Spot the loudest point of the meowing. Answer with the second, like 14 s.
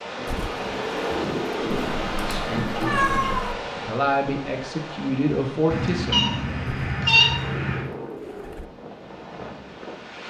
7 s.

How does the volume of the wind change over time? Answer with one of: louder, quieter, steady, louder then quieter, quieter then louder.
quieter.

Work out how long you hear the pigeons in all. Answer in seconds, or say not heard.
4 s.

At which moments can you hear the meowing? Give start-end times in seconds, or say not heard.
1.7-3.5, 5.7-7.8.